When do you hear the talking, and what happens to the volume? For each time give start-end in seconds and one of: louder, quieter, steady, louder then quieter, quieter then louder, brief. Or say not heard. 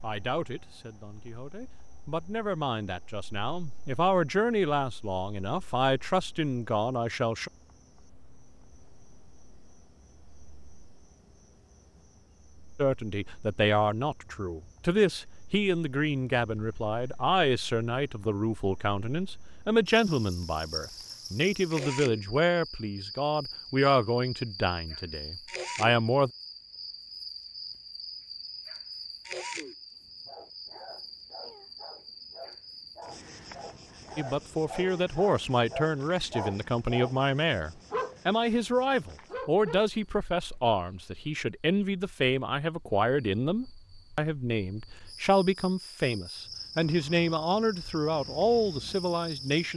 0.0-7.5 louder
12.8-26.3 steady
34.1-49.7 steady.